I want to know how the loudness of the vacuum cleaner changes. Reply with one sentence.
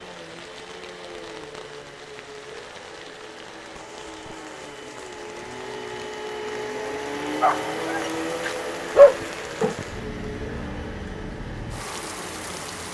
The loudness of the vacuum cleaner goes up, then down.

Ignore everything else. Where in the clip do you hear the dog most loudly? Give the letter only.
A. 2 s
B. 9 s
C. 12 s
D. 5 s
B.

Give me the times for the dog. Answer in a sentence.
The dog can be heard from 7.4 to 9.7 s.